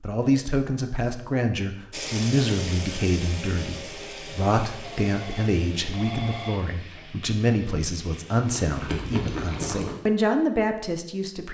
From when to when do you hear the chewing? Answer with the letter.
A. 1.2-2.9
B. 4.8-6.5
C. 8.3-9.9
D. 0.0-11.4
C.